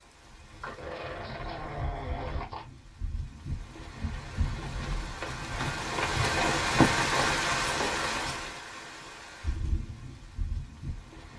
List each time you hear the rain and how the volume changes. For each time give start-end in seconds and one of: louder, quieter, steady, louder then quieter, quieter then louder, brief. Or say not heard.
0.0-11.3 louder then quieter.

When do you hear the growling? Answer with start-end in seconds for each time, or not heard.
0.6-2.6.